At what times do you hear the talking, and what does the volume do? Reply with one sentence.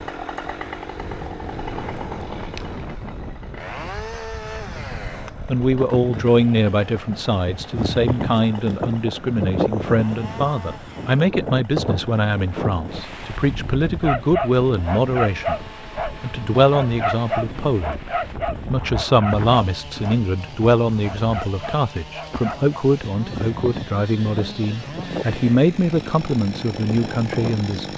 You can hear the talking from 5.5 to 27.9 s, at a steady volume.